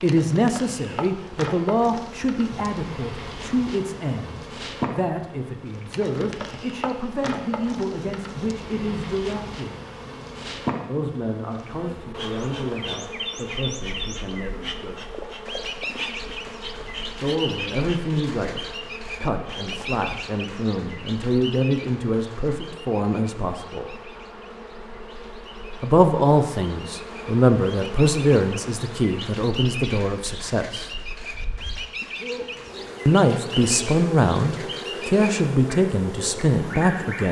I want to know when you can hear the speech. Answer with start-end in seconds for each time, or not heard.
0.0-9.8, 10.8-15.0, 17.1-23.9, 25.8-30.9, 33.0-37.2.